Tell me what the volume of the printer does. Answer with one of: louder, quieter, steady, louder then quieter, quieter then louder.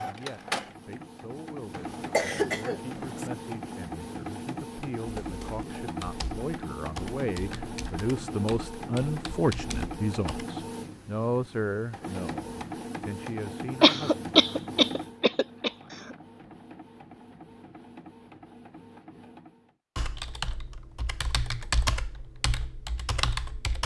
quieter.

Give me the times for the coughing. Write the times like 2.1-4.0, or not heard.
1.8-3.3, 13.8-15.7.